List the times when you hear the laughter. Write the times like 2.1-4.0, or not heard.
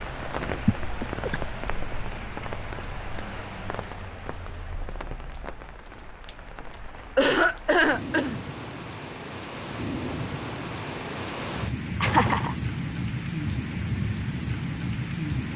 0.7-1.4, 7.2-8.4, 12.0-12.6.